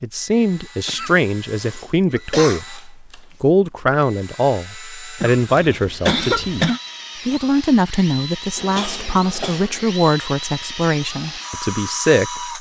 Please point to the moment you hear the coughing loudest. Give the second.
6 s.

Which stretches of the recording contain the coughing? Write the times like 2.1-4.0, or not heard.
0.8-2.6, 5.2-6.8, 8.6-9.8.